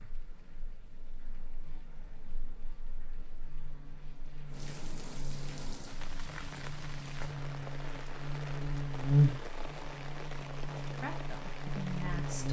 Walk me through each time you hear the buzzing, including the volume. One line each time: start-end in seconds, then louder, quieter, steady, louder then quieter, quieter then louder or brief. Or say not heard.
0.0-12.4 louder then quieter.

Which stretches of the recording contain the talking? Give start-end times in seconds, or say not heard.
10.8-12.4.